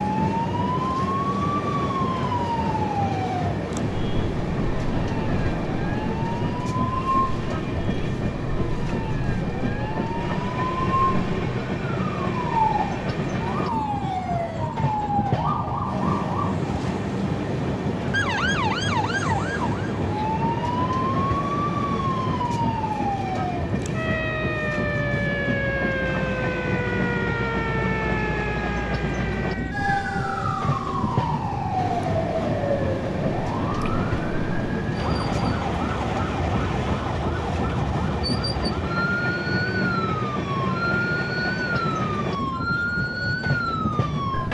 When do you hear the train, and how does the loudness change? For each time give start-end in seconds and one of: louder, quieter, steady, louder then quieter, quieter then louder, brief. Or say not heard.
0.0-44.4 steady.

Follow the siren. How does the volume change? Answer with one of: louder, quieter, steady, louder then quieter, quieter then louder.
steady.